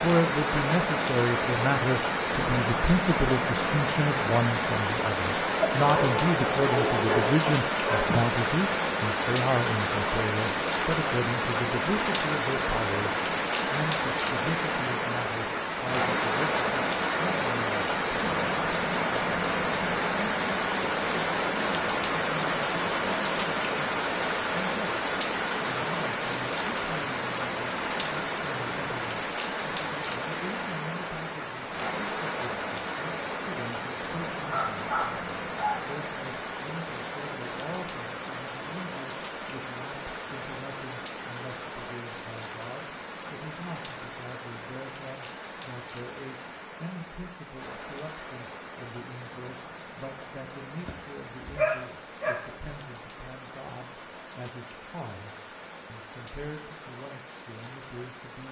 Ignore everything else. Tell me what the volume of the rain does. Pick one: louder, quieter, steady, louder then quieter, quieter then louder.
quieter.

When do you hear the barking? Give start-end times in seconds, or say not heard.
5.6-8.3, 34.5-35.9, 50.9-52.4.